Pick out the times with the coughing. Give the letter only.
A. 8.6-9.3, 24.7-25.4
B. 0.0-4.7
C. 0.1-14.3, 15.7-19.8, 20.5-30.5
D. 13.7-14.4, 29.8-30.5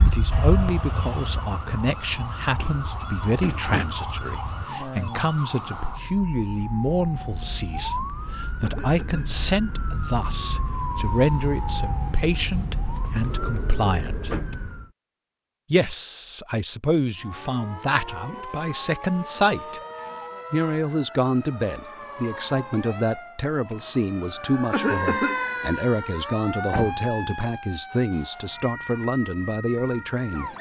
A.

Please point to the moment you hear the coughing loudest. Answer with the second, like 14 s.
25 s.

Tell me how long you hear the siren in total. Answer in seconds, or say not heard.
28 s.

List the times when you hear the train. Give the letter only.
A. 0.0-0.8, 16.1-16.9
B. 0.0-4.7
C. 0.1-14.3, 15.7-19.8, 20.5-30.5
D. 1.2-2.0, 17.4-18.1
B.